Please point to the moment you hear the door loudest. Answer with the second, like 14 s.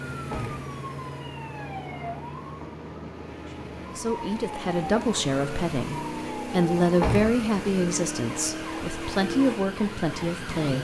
7 s.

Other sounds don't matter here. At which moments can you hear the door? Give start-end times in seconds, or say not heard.
0.2-0.7, 7.0-7.4.